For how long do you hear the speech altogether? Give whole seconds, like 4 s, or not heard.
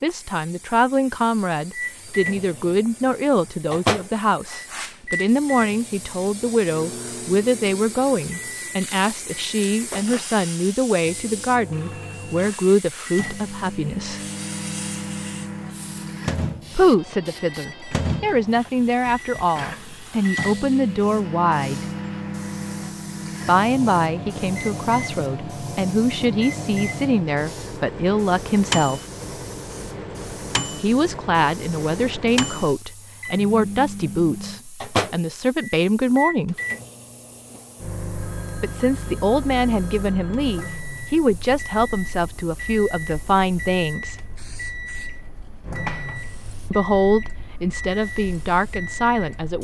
39 s.